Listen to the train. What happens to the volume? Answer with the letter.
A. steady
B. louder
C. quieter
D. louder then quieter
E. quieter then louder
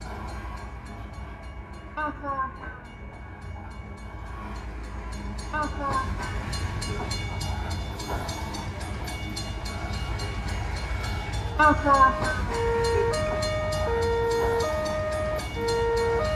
B.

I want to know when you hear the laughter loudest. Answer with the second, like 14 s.
12 s.